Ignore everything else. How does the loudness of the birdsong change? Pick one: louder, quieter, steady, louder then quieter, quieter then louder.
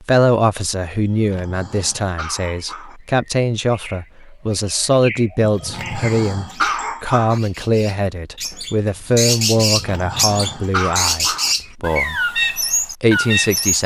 louder.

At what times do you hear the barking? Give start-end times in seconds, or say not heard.
1.0-3.0, 5.4-7.4, 9.6-11.6.